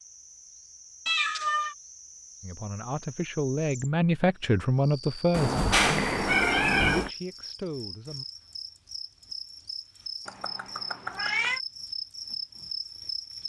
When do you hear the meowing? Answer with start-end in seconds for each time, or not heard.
1.1-1.8, 5.3-7.1, 10.2-11.6.